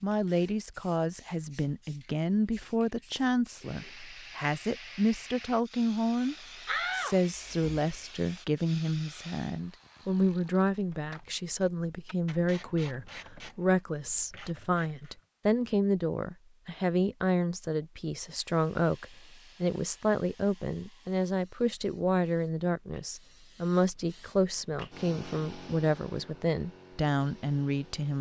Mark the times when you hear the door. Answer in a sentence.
The door can be heard from 6.7 to 8.3 s.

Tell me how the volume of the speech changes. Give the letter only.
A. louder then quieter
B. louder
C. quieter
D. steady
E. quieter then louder
D.